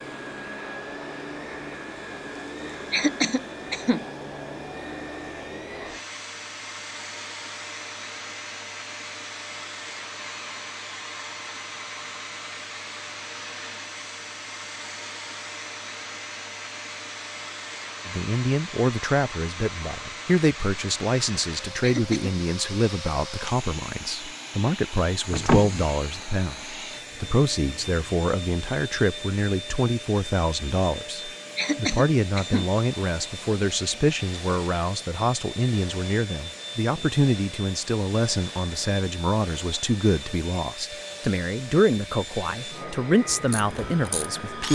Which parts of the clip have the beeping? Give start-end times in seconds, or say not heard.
25.3-25.8.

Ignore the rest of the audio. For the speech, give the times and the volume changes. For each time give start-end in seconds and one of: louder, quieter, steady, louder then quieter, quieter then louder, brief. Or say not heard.
18.1-44.7 steady.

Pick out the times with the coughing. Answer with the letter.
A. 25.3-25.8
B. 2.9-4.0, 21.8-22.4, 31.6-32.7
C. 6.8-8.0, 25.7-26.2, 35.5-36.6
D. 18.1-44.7
B.